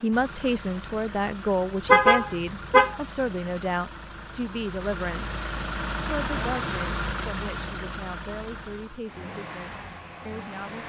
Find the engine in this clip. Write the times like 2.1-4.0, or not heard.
0.0-10.8.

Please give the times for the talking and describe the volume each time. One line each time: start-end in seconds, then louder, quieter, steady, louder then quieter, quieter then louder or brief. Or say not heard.
0.0-10.8 quieter.